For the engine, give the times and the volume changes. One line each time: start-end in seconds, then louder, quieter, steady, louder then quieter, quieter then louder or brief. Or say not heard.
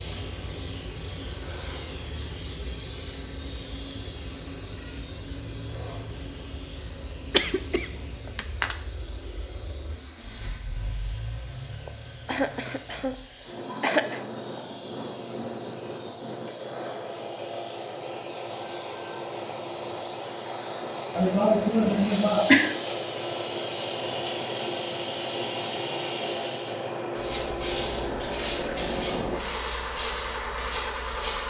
0.0-31.4 louder.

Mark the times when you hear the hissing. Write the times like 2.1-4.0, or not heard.
0.0-31.4.